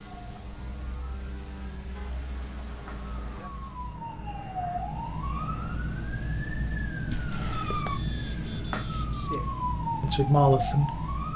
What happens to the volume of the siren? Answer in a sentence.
The loudness of the siren goes up.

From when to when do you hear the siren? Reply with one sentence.
The siren can be heard from 0.0 to 11.3 s.